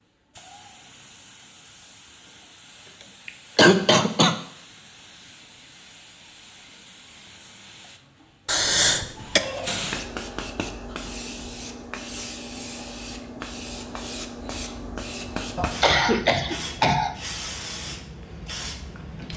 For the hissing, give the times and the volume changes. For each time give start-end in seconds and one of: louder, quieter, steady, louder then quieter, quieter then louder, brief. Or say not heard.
0.0-19.3 louder.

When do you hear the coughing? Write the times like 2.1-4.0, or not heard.
2.9-4.4, 8.4-9.4, 15.6-17.1.